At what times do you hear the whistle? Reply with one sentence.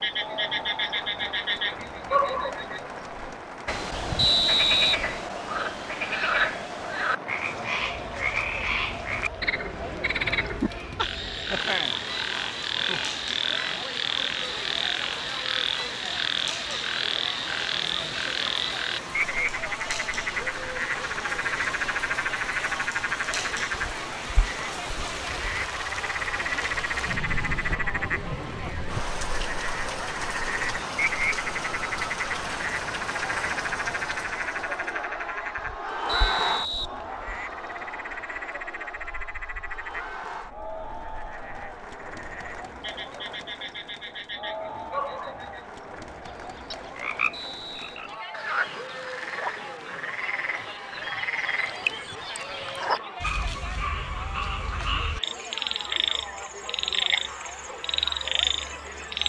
The whistle can be heard from 4.2 to 5.0 s, from 36.0 to 37.4 s and from 47.3 to 48.0 s.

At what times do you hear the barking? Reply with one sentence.
You can't hear the barking here.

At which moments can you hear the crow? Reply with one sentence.
You can't hear the crow here.